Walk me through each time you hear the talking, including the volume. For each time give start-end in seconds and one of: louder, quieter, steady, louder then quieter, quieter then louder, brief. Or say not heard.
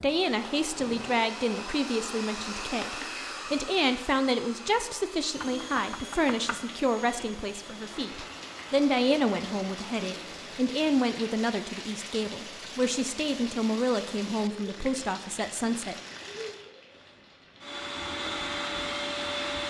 0.0-15.9 steady.